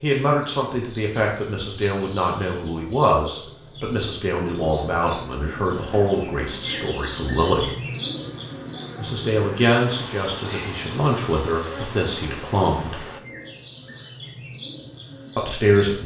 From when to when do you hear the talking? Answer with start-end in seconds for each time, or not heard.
0.0-7.7, 8.9-13.0, 15.3-16.0.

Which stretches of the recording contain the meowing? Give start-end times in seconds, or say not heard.
not heard.